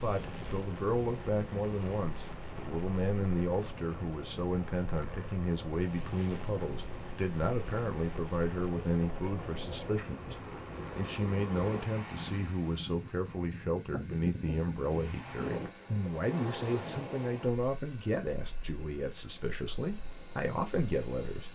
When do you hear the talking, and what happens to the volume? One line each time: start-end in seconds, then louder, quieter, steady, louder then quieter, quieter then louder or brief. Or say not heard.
0.0-21.5 steady.